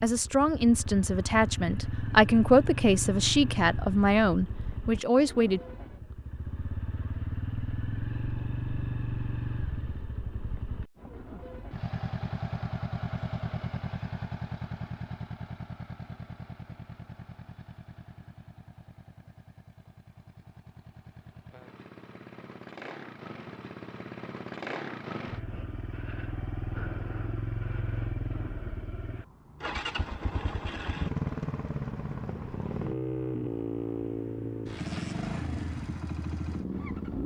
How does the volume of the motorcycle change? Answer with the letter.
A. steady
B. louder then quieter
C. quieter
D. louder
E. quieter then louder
E.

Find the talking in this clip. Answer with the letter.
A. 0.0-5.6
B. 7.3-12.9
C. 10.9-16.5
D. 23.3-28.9
A.